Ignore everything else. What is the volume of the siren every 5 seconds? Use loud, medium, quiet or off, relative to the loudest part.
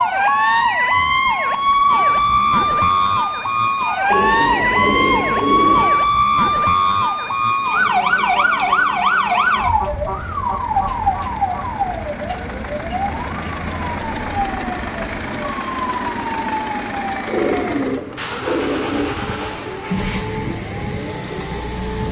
loud, loud, medium, quiet, quiet.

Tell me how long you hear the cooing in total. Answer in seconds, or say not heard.
4 s.